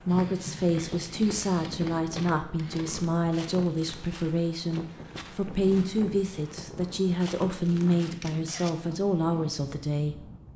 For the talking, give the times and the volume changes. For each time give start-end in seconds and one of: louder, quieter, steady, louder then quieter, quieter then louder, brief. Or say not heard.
0.0-10.2 steady.